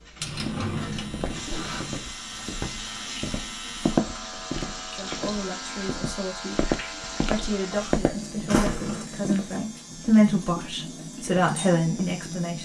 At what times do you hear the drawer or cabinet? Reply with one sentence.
The drawer or cabinet can be heard from 0.1 to 2.0 s and from 8.4 to 9.1 s.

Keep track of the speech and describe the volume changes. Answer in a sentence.
The volume of the speech goes up.